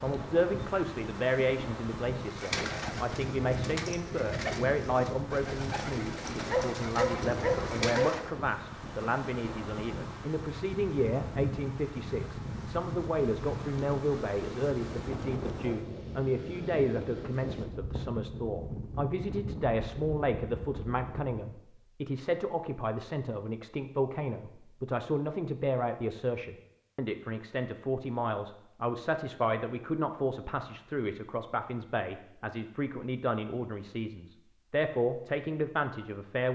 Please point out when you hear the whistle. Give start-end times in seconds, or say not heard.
not heard.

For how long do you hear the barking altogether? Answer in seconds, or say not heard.
2 s.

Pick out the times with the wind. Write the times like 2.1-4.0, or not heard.
0.0-21.4.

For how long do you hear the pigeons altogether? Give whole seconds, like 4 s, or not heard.
6 s.